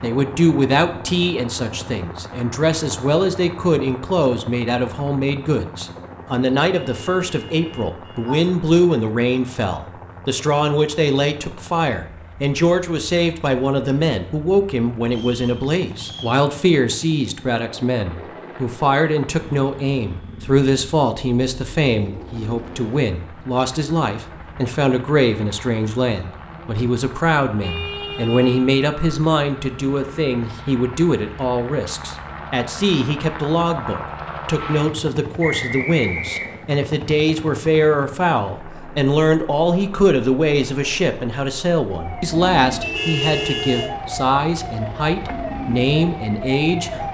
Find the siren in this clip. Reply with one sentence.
The siren can be heard from 41.8 to 47.1 s.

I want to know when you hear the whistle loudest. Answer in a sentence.
The volume of the whistle peaks at 36 seconds.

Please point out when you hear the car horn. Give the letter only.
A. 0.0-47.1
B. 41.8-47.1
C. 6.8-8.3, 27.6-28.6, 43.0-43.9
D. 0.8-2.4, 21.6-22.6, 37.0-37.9
C.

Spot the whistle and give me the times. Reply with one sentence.
You can hear the whistle from 15.1 to 16.4 s and from 35.4 to 36.6 s.